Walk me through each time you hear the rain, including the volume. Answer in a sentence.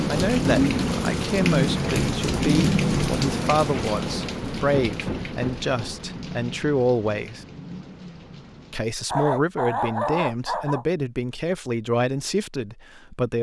The rain can be heard from 0.0 to 8.9 s, getting quieter.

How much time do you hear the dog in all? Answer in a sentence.
You can hear the dog for 2 seconds altogether.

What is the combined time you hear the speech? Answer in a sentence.
The speech can be heard for 12 seconds in total.